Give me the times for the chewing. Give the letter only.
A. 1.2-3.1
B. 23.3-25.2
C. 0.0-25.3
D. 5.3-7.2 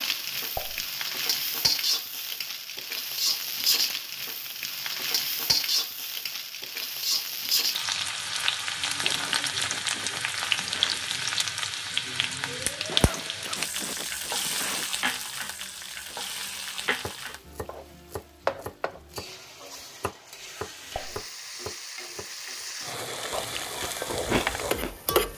B.